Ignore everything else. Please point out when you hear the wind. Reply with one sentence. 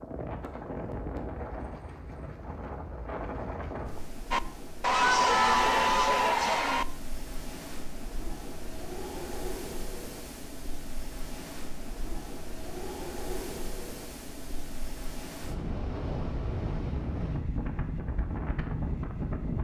You can hear the wind from 0.0 to 19.5 s.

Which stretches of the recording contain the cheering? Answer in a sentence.
The cheering can be heard from 4.3 to 6.8 s.